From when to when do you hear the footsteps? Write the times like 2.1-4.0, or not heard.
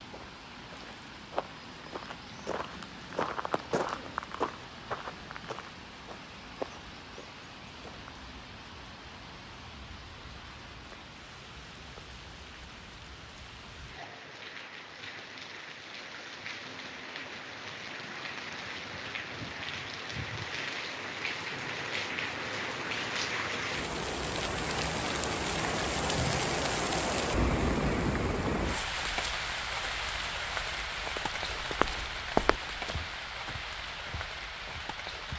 0.0-8.2, 31.1-35.3.